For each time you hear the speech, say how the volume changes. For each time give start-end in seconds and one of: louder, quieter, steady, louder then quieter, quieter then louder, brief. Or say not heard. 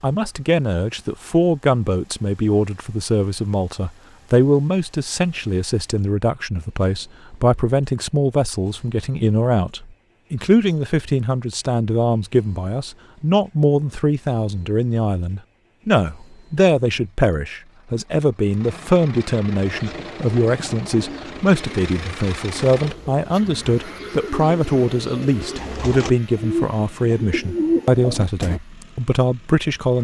0.0-29.9 steady.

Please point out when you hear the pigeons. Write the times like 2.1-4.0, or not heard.
19.6-28.6.